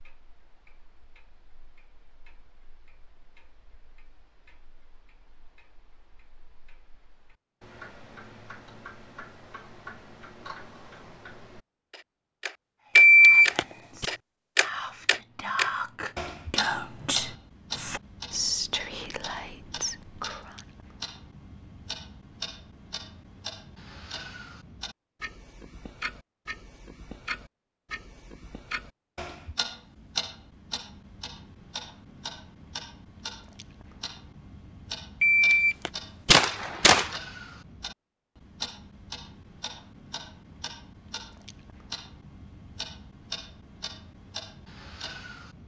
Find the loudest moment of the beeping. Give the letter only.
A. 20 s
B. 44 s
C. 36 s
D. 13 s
D.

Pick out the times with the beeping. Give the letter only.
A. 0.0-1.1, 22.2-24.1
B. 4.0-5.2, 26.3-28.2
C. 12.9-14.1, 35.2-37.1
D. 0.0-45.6
C.